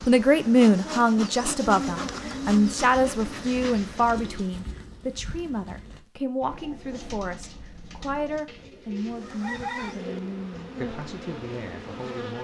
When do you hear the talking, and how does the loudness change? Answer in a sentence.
You can hear the talking from 0.1 to 12.4 s, getting quieter.